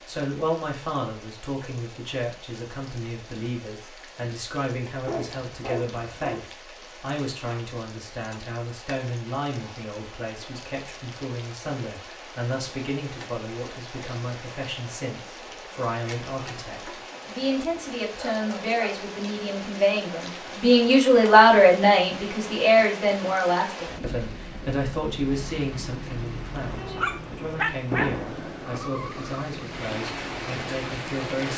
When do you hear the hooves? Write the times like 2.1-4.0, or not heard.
not heard.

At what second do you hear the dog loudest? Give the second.
28 s.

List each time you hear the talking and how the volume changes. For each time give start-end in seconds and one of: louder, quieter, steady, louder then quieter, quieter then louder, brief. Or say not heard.
0.1-31.5 louder then quieter.